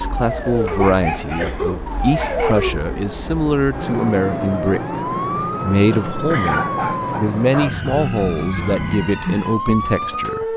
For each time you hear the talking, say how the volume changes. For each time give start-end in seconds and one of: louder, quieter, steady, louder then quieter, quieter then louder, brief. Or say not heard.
0.0-10.5 steady.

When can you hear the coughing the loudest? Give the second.
2 s.